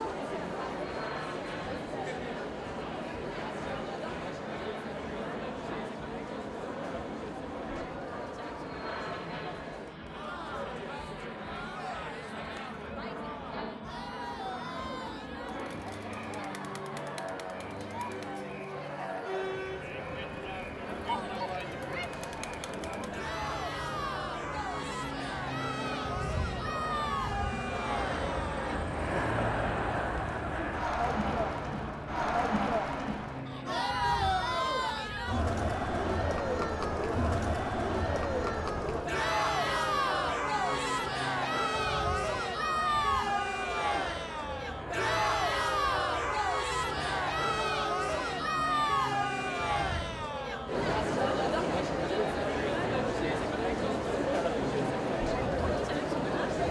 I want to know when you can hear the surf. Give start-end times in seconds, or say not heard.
not heard.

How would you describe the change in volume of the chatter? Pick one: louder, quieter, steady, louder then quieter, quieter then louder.
louder.